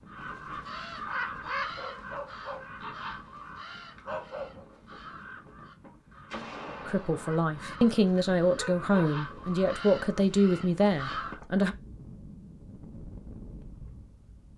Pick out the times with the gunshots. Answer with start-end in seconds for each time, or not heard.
6.3-7.4.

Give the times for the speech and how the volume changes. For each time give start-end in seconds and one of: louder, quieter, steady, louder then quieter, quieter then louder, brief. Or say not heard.
6.8-11.8 steady.